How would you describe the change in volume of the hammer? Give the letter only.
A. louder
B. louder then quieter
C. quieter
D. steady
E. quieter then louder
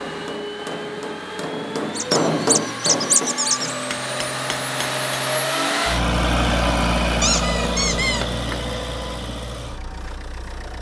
B.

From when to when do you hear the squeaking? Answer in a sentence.
The squeaking can be heard from 1.9 to 3.8 s and from 7.2 to 8.7 s.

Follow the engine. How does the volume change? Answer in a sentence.
The loudness of the engine goes up, then down.